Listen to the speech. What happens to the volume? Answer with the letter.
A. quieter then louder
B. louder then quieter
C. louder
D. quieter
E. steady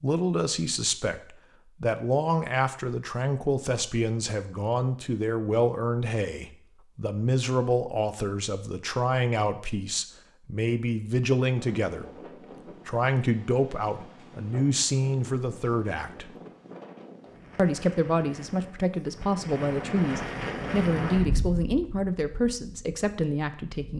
E.